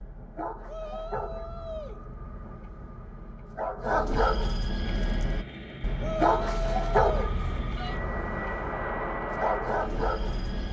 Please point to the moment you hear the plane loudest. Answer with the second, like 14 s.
9 s.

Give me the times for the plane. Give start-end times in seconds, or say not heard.
4.8-10.6.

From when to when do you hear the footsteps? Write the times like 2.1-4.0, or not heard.
not heard.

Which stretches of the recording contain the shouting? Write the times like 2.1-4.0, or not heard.
0.7-2.0, 6.0-8.0.